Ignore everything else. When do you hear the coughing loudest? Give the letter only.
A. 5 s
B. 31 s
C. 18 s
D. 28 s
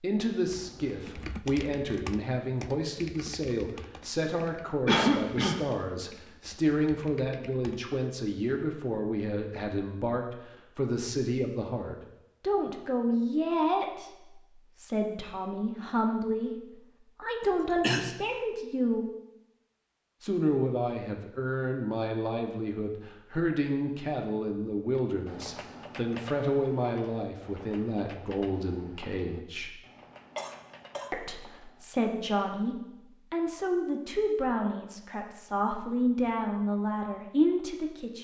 A.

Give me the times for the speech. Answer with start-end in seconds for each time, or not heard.
0.0-16.5, 17.1-19.1, 20.2-29.8, 31.1-38.1.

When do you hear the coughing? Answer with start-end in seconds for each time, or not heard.
4.8-5.6, 17.4-18.1, 30.4-31.1.